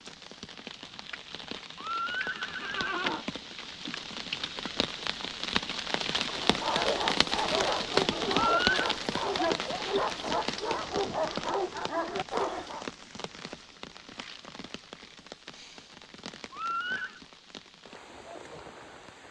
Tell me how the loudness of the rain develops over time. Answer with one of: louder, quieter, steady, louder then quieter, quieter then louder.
louder then quieter.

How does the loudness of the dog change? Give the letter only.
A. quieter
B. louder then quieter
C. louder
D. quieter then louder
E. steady
E.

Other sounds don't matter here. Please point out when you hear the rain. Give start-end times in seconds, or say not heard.
0.0-19.2.